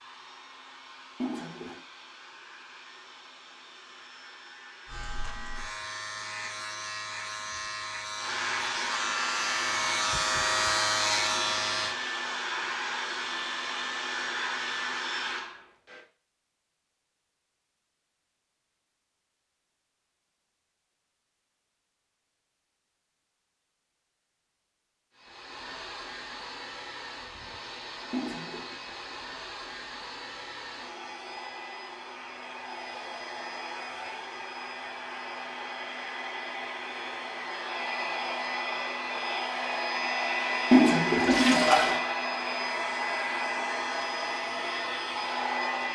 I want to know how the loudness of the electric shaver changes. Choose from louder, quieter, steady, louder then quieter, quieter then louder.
louder.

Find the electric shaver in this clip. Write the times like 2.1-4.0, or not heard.
4.8-11.9.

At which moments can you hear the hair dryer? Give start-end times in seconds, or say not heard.
0.0-16.0, 25.1-45.8.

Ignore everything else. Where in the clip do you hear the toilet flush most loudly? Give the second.
41 s.